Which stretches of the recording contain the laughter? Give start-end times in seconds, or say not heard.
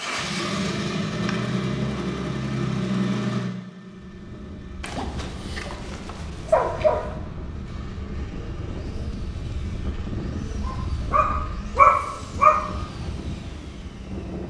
not heard.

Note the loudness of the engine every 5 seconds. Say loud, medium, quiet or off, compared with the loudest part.
loud, quiet, quiet.